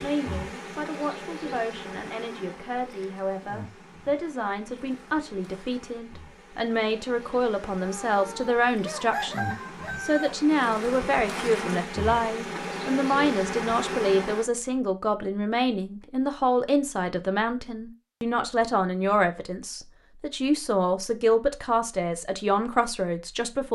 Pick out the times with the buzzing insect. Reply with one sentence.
You can hear the buzzing insect from 0.0 to 14.4 s.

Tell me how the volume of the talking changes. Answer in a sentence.
The loudness of the talking goes up.